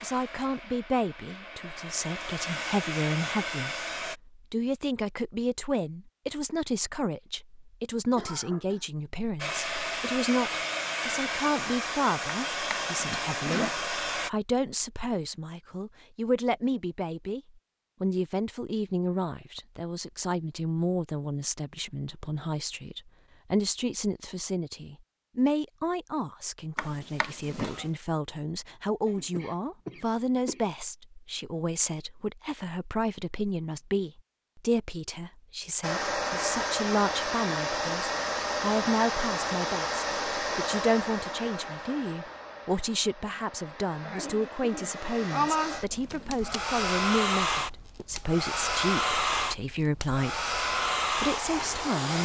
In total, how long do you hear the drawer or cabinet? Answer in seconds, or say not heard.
3 s.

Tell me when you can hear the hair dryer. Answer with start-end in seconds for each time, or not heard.
0.0-4.2, 9.3-14.3, 35.8-52.1.